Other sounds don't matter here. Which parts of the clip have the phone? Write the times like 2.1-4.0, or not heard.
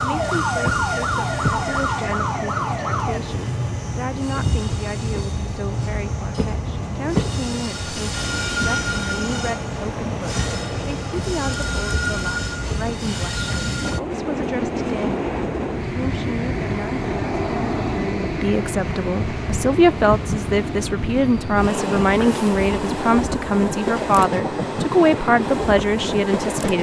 not heard.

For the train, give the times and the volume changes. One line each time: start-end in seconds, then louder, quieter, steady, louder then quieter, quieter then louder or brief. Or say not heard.
0.0-26.7 steady.